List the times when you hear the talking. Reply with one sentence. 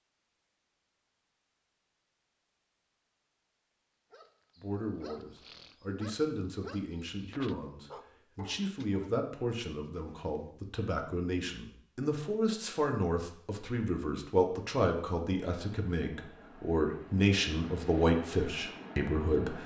The talking can be heard from 4.6 to 19.6 s.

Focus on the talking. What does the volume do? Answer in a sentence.
The volume of the talking goes up.